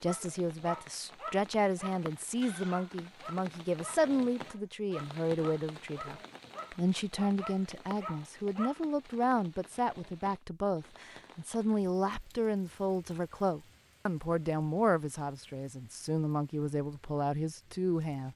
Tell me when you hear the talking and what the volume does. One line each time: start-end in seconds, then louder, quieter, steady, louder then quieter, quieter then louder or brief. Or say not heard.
0.0-18.3 steady.